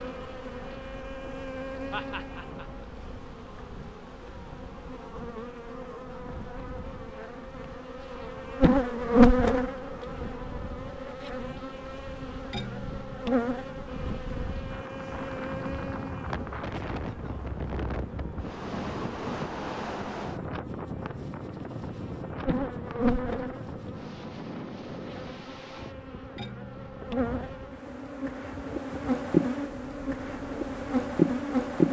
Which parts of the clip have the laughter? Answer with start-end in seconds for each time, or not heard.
1.9-2.9.